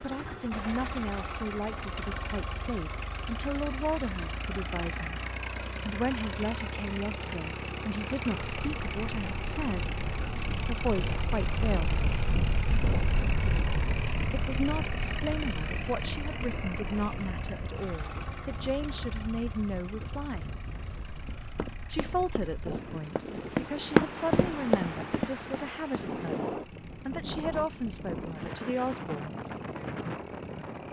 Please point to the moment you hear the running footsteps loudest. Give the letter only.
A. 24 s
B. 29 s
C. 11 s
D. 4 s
A.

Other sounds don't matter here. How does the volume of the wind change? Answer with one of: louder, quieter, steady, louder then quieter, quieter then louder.
quieter then louder.